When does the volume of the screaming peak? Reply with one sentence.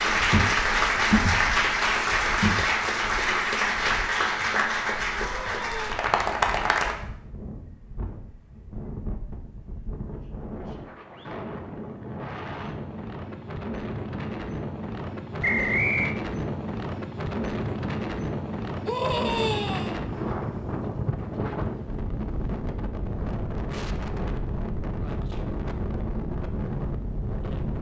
The volume of the screaming peaks at 19 seconds.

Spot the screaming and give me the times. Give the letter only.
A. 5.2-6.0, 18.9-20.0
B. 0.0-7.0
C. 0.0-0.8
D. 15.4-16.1
A.